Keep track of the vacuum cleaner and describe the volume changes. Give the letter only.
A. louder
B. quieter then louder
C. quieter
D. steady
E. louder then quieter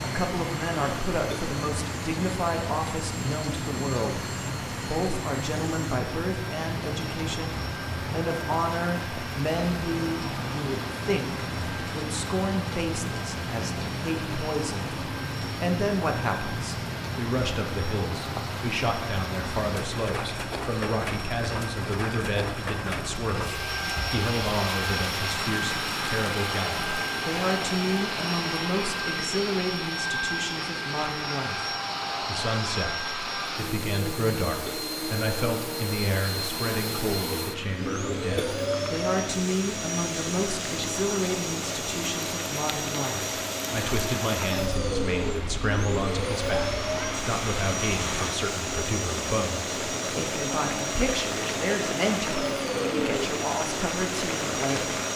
A.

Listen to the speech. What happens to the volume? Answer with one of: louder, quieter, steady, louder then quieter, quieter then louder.
steady.